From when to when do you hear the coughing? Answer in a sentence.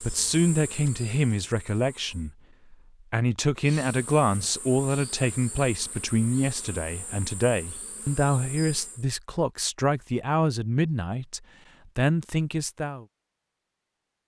You can't hear the coughing here.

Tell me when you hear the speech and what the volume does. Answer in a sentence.
The speech can be heard from 0.0 to 13.1 s, at a steady volume.